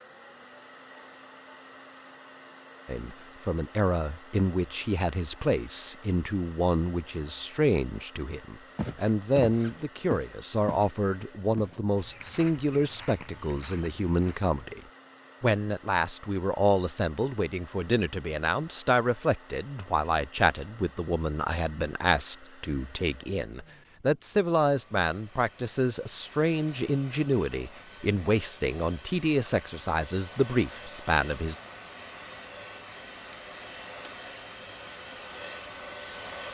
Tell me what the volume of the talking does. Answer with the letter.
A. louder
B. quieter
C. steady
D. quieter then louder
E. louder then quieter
C.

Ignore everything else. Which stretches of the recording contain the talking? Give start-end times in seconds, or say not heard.
2.9-14.8, 15.4-31.6.